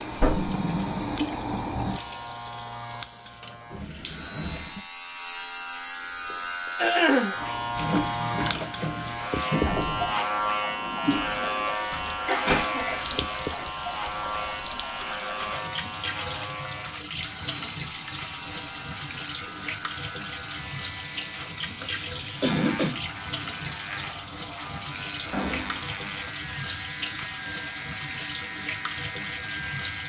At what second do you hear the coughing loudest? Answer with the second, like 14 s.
7 s.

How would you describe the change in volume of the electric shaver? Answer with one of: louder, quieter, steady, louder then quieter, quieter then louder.
louder then quieter.